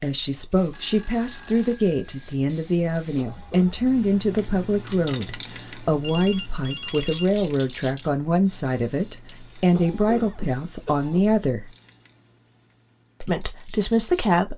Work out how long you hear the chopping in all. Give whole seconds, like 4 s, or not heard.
not heard.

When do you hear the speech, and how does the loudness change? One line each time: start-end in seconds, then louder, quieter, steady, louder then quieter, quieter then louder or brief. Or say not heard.
0.0-11.7 steady
13.2-14.5 brief.